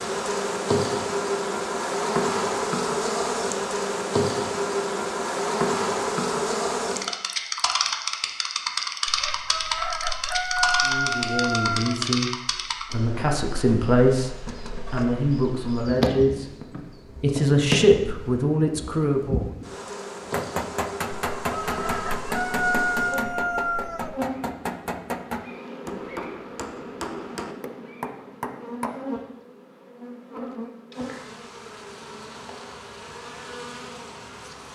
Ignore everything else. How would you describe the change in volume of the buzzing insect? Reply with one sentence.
The loudness of the buzzing insect goes down.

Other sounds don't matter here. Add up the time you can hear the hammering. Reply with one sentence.
You can hear the hammering for 9 seconds altogether.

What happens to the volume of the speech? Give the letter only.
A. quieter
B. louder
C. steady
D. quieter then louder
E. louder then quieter
B.